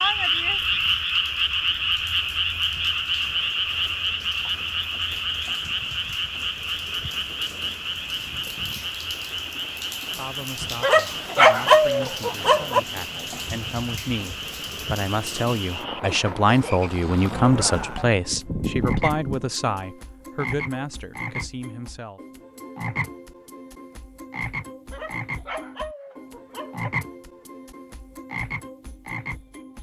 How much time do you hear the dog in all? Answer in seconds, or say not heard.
4 s.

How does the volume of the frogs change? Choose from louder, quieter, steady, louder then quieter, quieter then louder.
quieter.